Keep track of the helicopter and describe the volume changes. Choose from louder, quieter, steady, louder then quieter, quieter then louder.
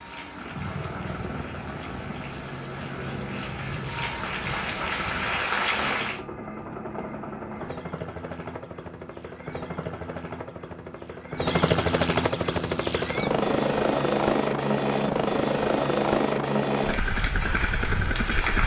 louder.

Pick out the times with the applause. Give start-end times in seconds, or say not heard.
0.0-6.2, 16.9-18.6.